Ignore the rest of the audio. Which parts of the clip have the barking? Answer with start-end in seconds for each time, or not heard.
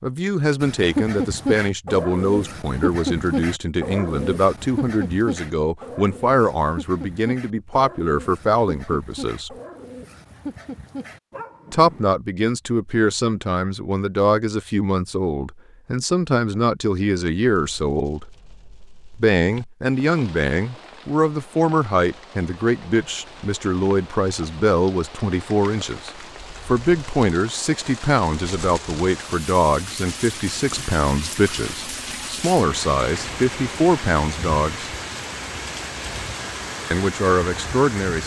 0.6-12.1.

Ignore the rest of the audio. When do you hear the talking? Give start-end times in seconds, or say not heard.
0.0-9.5, 11.7-18.2, 19.1-34.9, 36.9-38.2.